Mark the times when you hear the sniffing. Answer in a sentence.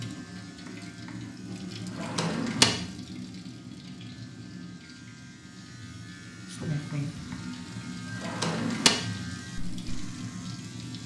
The sniffing can be heard from 6.5 to 7.5 s.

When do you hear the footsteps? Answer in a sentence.
The footsteps can't be heard in this clip.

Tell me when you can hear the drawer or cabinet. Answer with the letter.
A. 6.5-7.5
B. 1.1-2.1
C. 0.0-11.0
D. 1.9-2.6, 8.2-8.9
D.